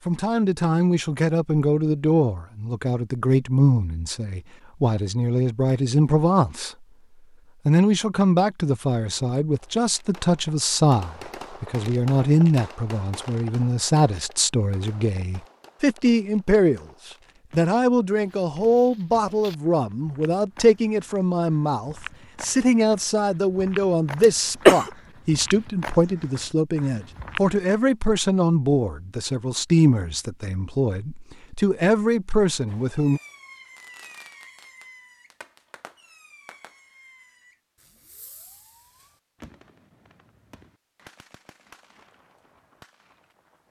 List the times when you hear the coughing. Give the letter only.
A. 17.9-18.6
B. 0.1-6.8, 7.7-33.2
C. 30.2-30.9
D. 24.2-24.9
D.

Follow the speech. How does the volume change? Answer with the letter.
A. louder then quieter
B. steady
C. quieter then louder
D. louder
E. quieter
B.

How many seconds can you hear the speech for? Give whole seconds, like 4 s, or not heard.
32 s.